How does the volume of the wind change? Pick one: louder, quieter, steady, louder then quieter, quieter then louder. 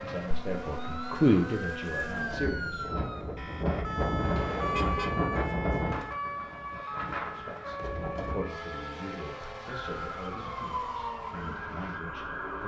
louder then quieter.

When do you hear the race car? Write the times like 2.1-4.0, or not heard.
0.0-2.4, 8.4-12.6.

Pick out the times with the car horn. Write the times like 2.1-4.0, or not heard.
4.5-5.2.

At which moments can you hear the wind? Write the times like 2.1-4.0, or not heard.
0.0-8.4.